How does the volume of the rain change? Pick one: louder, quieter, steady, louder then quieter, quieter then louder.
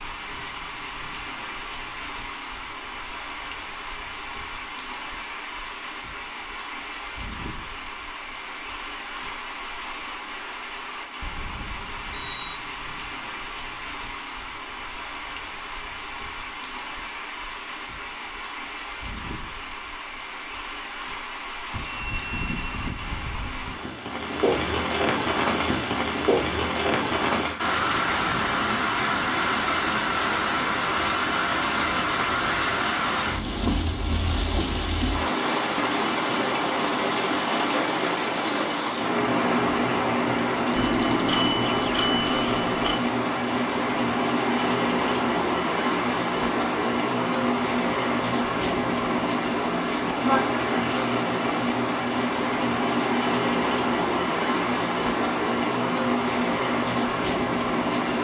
louder.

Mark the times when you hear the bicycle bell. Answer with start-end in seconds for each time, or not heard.
11.2-12.3, 21.7-23.8, 40.8-43.0.